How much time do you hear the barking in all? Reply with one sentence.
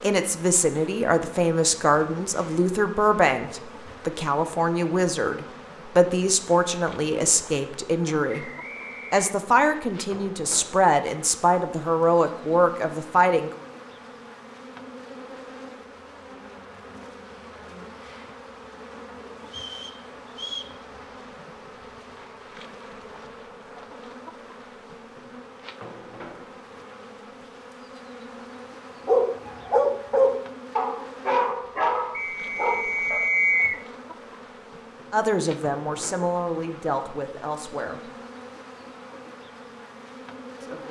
You can hear the barking for 4 seconds altogether.